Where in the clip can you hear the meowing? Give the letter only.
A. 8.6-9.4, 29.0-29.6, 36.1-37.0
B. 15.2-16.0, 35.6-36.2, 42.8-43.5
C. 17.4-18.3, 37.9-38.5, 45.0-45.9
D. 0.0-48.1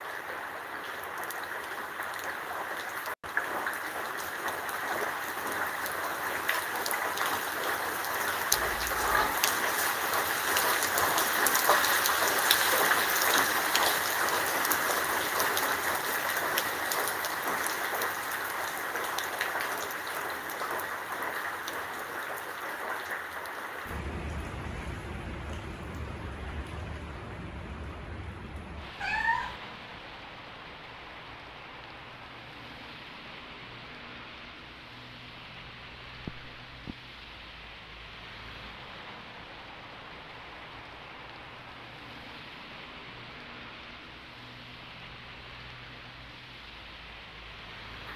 A.